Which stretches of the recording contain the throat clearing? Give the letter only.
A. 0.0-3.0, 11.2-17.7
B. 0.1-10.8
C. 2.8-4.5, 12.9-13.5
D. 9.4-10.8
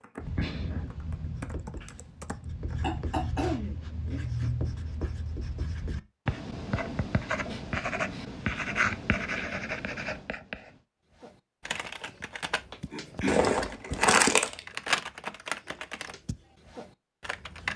C.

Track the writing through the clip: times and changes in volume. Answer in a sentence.
You can hear the writing from 0.1 to 10.8 s, getting louder.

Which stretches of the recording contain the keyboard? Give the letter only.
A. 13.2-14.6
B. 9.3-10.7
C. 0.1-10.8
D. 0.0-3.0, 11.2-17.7
D.